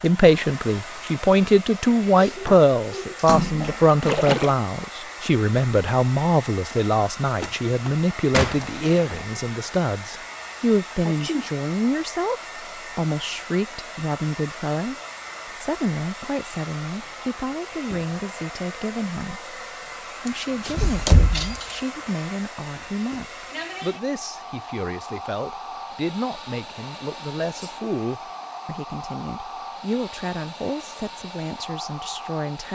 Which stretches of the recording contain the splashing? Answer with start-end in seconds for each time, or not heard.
3.1-4.5.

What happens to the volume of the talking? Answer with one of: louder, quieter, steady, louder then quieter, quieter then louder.
quieter.